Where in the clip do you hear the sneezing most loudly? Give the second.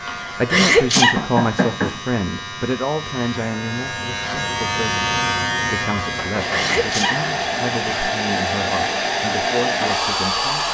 1 s.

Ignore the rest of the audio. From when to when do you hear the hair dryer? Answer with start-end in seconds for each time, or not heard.
6.3-10.6.